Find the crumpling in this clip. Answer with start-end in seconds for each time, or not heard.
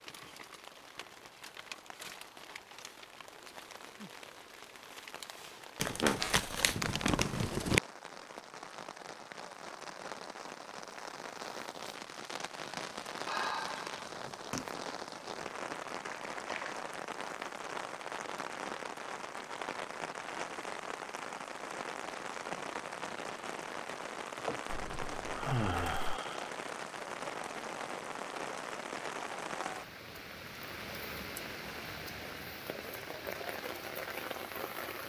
5.8-7.8, 16.0-16.8, 24.6-26.2.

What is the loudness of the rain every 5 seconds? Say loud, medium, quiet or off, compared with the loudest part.
medium, medium, loud, loud, loud, loud, loud.